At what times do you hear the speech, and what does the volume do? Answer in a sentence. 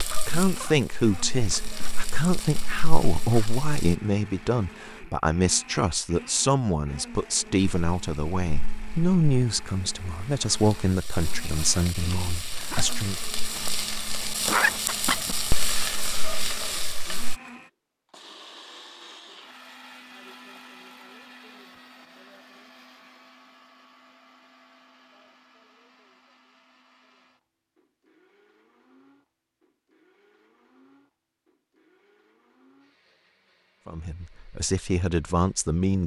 The speech can be heard from 0.1 to 13.2 s, at a steady volume; and briefly from 33.9 to 36.0 s.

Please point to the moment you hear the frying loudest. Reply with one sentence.
The volume of the frying peaks at 15 seconds.